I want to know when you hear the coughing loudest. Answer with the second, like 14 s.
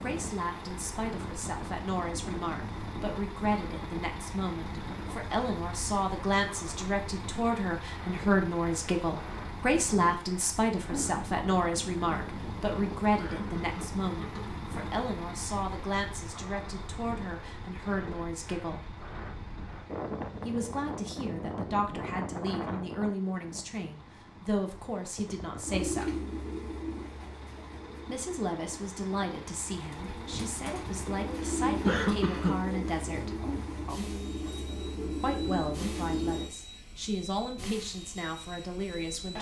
32 s.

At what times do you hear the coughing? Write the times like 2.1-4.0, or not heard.
13.2-14.6, 31.8-32.8.